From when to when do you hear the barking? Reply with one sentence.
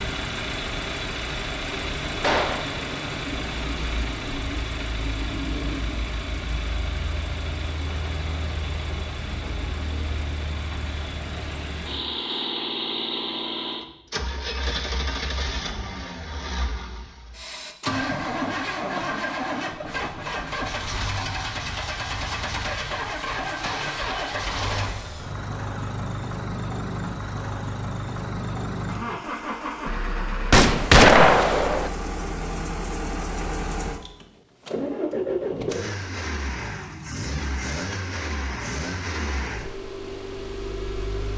The barking can't be heard in this clip.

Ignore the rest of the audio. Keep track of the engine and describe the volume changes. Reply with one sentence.
The loudness of the engine stays about the same.